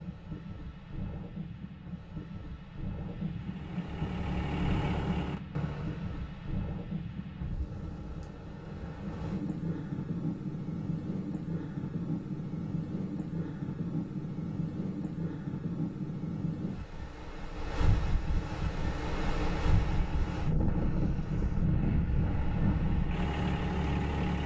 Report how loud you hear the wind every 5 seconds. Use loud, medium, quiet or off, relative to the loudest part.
medium, medium, loud, loud, loud.